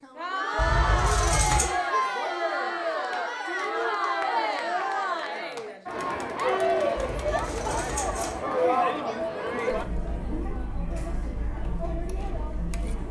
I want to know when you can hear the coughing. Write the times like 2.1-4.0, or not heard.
not heard.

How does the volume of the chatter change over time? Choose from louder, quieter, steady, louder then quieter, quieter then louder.
quieter.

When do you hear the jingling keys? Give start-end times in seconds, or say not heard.
0.6-1.7, 7.0-8.4.